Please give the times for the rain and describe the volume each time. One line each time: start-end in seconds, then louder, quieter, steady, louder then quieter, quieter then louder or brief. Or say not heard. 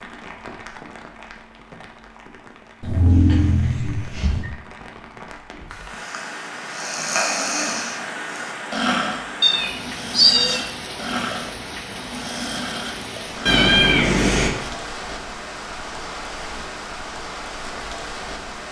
0.0-18.6 louder.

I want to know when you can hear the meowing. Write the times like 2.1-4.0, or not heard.
2.8-4.5, 9.4-10.6, 13.4-14.5.